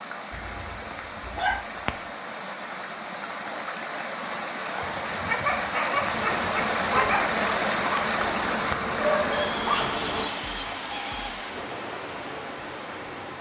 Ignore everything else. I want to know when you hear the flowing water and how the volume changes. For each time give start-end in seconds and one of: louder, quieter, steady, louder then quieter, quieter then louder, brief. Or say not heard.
0.0-13.3 louder then quieter.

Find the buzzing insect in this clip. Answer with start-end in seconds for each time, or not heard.
6.1-10.2.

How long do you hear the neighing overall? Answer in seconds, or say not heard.
2 s.